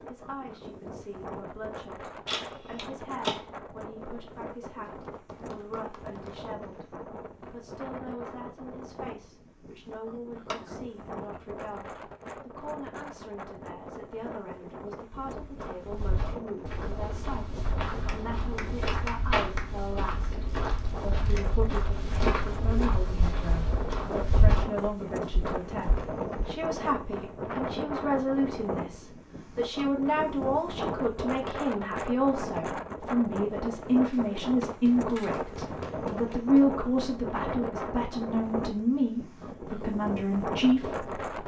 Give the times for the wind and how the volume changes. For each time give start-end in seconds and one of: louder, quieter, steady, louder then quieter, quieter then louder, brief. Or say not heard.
0.0-41.4 louder.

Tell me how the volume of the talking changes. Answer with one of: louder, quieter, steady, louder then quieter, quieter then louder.
louder.